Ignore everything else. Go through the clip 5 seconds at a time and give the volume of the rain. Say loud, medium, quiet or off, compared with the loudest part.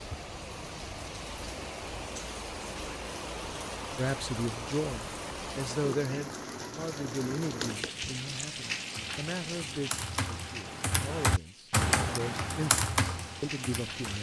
loud, loud, medium.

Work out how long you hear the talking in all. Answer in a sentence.
The talking can be heard for 10 seconds in total.